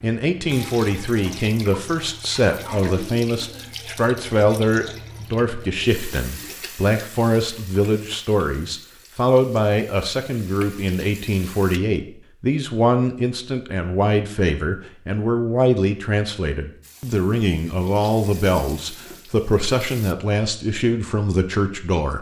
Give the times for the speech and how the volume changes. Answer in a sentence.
The speech can be heard from 0.0 to 22.1 s, at a steady volume.